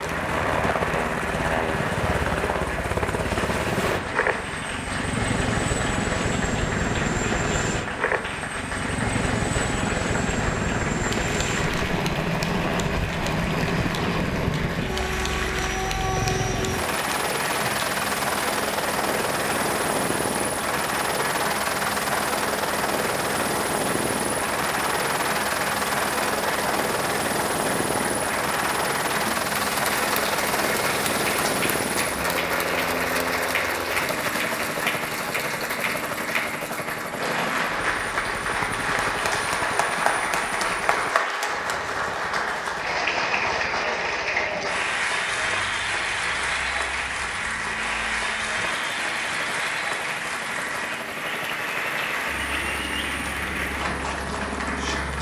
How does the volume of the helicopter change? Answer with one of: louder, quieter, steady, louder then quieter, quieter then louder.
quieter.